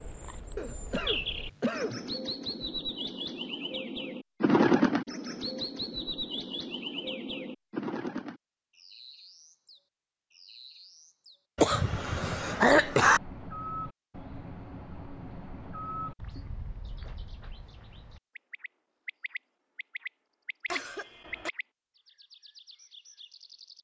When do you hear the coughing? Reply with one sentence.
The coughing can be heard from 0.6 to 2.0 s, from 11.6 to 13.2 s and from 20.7 to 21.5 s.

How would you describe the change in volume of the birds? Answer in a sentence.
The loudness of the birds goes up, then down.